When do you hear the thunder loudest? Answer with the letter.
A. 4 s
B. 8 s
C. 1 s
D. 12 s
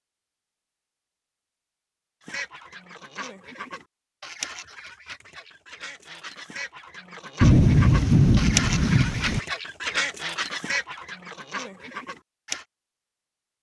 B.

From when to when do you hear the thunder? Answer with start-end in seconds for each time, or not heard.
7.4-9.4.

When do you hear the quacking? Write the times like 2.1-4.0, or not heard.
2.2-12.7.